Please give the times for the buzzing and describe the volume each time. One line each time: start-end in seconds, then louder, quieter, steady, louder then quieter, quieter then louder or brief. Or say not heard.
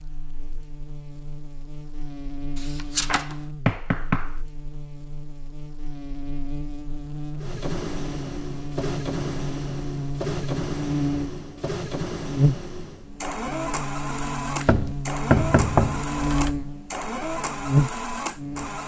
0.0-18.8 louder.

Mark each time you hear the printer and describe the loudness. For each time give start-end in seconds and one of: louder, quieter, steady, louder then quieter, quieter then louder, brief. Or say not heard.
7.3-18.8 steady.